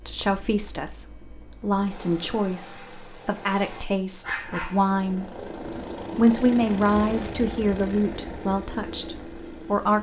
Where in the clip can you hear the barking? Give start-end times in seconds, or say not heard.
4.2-4.9.